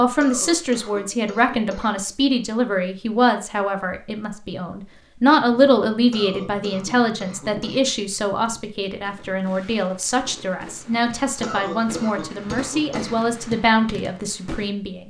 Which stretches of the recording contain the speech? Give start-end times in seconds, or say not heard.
0.0-15.0.